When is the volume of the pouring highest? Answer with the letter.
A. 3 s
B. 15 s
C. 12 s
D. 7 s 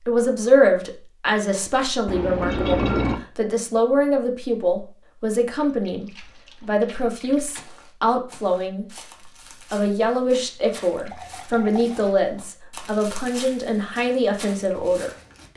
A.